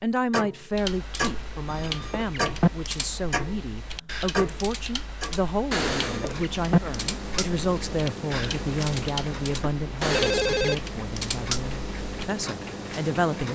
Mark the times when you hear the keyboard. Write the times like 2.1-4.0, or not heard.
0.7-12.3.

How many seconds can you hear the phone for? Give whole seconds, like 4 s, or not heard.
3 s.